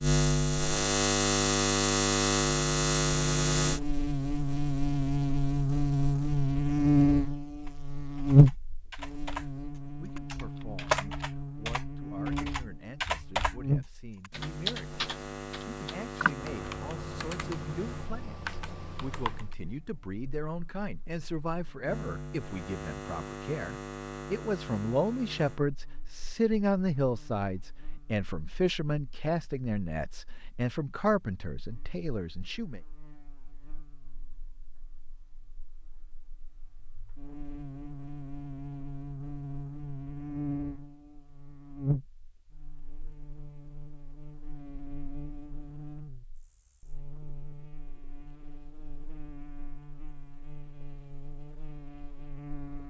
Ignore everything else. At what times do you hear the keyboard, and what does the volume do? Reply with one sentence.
The keyboard can be heard from 7.6 to 19.6 s, getting louder then quieter.